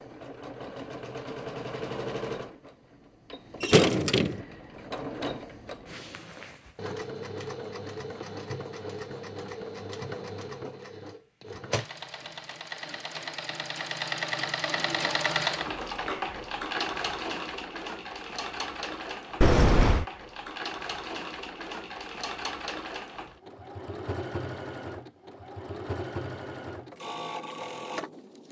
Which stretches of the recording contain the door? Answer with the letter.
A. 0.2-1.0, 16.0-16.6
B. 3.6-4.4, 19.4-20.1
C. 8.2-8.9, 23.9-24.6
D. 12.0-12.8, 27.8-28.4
B.